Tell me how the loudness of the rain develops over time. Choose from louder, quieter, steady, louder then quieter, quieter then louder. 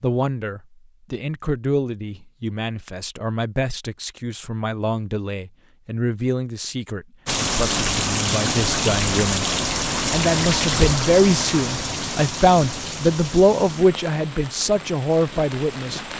quieter.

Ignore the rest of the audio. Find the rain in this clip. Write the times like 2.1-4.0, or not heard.
7.2-16.1.